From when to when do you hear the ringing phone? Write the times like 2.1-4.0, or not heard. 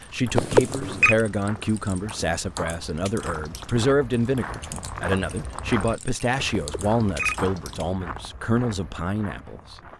0.3-1.1, 6.5-7.3.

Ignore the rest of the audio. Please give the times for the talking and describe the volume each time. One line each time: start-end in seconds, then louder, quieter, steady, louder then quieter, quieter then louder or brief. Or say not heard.
0.0-9.8 steady.